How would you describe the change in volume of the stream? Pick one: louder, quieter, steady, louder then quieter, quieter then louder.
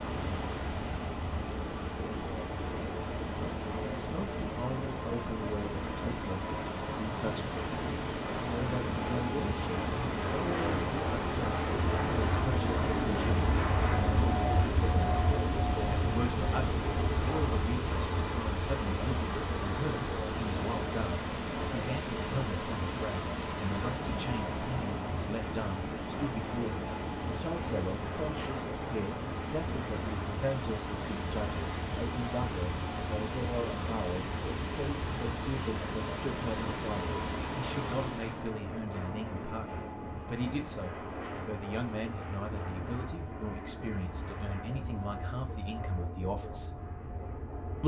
steady.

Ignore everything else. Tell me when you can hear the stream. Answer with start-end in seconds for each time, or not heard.
0.0-38.5.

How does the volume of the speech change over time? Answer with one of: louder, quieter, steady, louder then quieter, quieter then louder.
steady.